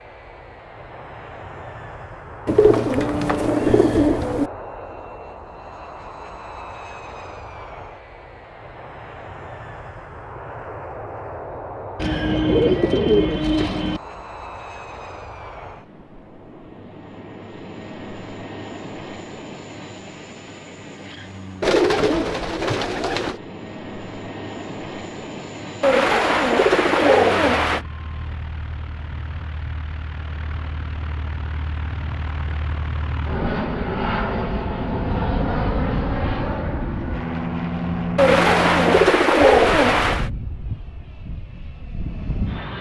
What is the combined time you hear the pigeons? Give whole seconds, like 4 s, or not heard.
10 s.